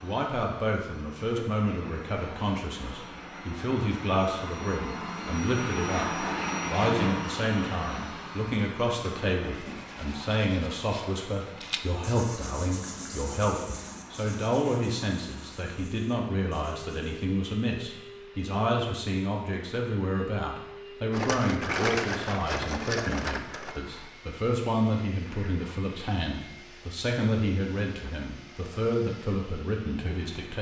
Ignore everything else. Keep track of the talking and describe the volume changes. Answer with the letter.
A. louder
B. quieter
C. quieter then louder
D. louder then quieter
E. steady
E.